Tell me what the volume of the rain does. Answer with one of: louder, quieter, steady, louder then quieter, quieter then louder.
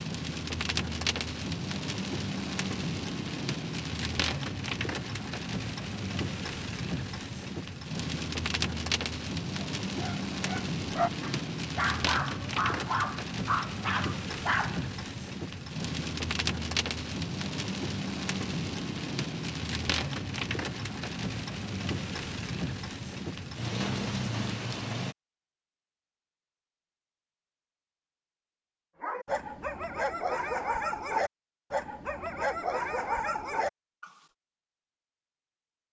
steady.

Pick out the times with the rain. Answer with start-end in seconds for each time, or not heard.
0.0-25.1.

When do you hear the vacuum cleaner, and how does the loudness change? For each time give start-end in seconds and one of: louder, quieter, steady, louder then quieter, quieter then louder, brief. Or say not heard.
not heard.